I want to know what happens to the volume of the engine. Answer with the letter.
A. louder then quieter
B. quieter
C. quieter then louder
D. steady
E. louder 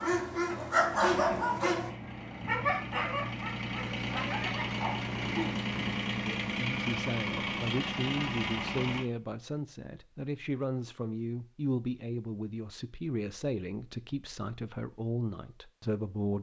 E.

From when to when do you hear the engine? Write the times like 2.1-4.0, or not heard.
0.5-9.1.